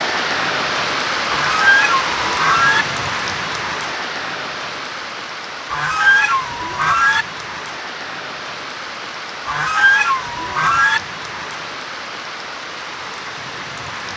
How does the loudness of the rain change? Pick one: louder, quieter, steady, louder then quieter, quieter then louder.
quieter.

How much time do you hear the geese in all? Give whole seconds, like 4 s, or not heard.
5 s.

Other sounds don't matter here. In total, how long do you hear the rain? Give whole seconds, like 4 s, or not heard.
14 s.